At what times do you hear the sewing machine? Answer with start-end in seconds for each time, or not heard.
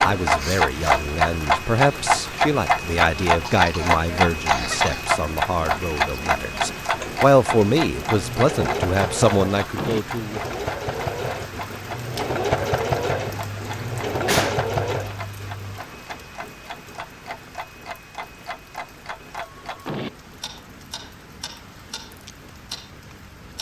6.9-15.2.